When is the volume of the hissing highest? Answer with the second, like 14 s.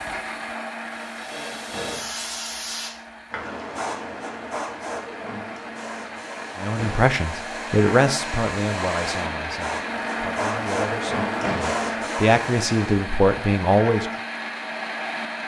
11 s.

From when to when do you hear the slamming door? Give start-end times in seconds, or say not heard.
1.7-2.1, 6.8-7.2, 11.4-11.8.